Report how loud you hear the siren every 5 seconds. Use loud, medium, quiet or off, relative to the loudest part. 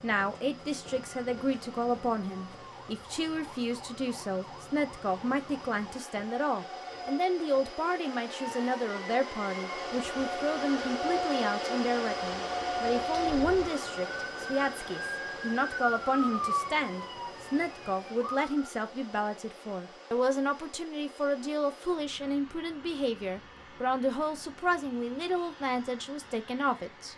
quiet, medium, loud, loud, off, off.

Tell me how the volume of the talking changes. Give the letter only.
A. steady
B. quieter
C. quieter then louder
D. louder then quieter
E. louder
A.